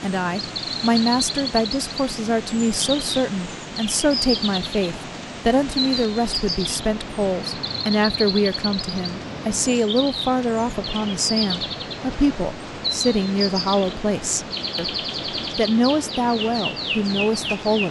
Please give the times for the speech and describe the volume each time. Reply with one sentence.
You can hear the speech from 0.0 to 14.9 s, at a steady volume; and briefly from 15.6 to 17.8 s.